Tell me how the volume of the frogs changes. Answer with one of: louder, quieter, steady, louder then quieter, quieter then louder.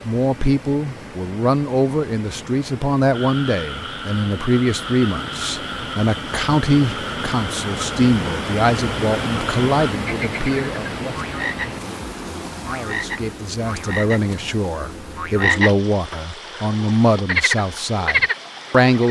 louder.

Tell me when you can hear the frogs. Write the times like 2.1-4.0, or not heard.
3.1-19.0.